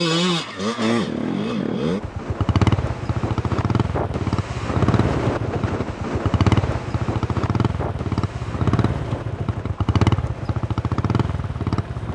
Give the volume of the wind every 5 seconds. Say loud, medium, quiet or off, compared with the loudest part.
loud, loud, medium.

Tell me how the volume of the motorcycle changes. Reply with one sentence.
The volume of the motorcycle stays about the same.